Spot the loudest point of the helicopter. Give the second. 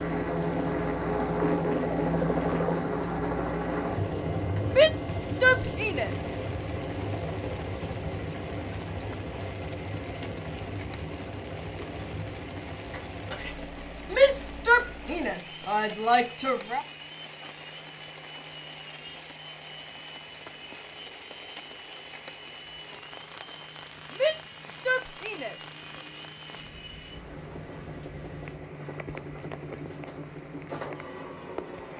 2 s.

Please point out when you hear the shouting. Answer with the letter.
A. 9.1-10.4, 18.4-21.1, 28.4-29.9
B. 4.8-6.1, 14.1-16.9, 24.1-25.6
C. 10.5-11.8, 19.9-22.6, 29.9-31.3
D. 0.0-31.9
B.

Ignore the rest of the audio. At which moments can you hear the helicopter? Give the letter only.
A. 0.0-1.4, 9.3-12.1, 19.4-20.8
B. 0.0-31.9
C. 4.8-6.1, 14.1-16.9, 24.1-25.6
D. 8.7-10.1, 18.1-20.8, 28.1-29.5
B.